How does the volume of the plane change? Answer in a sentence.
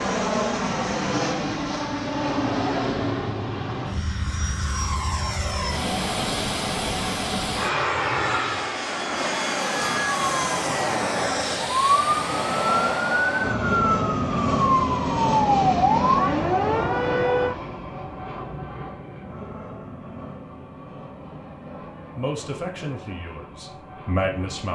The loudness of the plane goes down.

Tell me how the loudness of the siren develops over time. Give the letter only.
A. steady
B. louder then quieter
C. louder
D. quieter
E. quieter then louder
C.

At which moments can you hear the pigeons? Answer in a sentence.
You can't hear the pigeons here.